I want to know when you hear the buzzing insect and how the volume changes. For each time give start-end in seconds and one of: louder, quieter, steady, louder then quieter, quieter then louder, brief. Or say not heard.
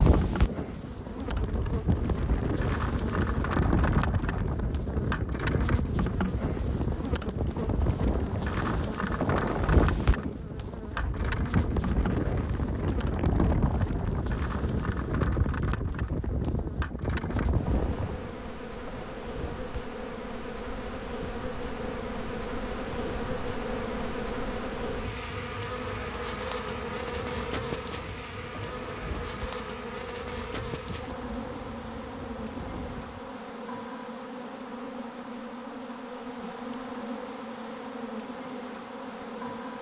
0.0-39.7 steady.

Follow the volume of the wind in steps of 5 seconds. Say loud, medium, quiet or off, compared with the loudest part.
loud, loud, loud, loud, quiet, quiet, quiet, off.